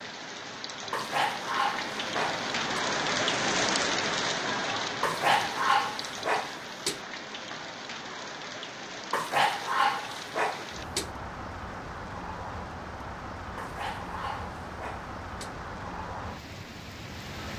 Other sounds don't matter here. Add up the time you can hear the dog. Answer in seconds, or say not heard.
8 s.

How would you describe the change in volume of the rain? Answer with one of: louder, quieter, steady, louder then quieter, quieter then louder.
quieter.